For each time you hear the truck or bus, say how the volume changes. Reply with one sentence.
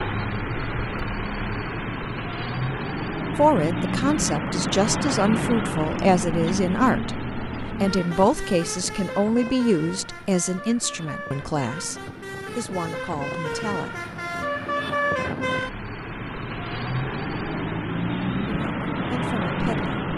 The truck or bus can be heard from 0.0 to 20.1 s, getting quieter then louder.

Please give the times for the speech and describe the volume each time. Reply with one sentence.
You can hear the speech from 3.4 to 14.1 s, getting quieter; and briefly from 18.4 to 20.0 s.